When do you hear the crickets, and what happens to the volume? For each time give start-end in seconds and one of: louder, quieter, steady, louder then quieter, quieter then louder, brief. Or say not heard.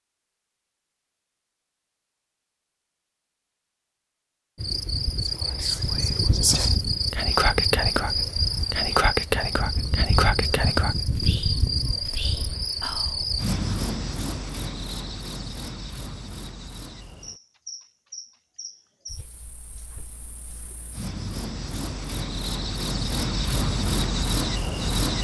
4.5-25.1 quieter then louder.